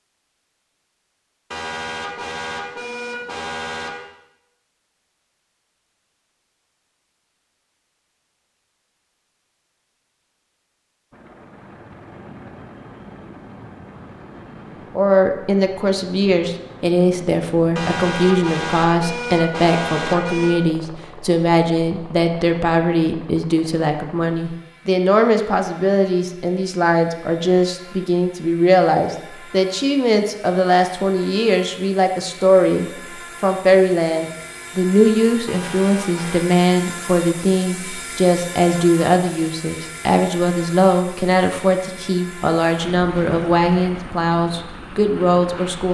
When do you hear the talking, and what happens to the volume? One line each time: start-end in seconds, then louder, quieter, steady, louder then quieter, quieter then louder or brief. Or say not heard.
14.9-45.8 steady.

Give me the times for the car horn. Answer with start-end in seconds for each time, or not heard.
1.5-4.0, 17.8-20.6, 35.5-36.5.